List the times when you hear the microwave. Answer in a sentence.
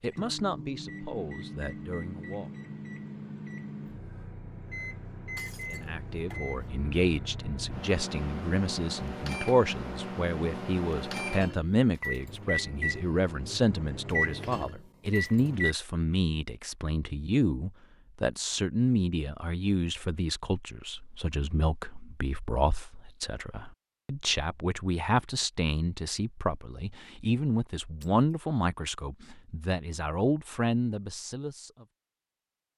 You can hear the microwave from 0.0 to 15.8 s.